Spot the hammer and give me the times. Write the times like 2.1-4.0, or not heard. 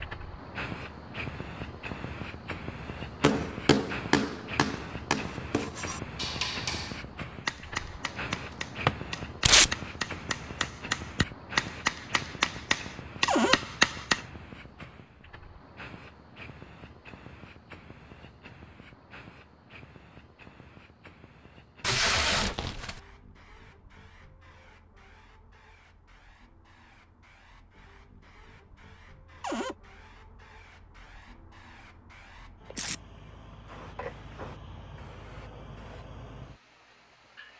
3.2-14.2.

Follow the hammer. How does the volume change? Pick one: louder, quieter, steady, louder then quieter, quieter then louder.
quieter then louder.